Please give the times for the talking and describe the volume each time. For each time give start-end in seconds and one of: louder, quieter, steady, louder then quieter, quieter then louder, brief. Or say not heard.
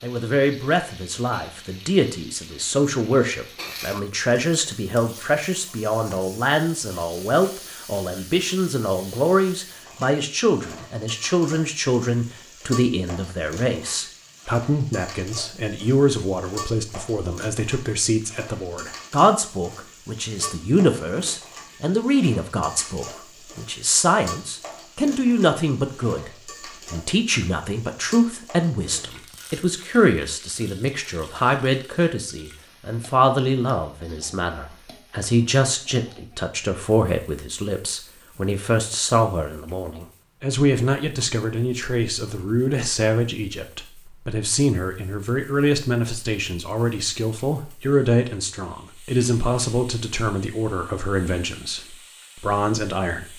0.0-53.3 steady.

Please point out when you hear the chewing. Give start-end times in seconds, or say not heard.
not heard.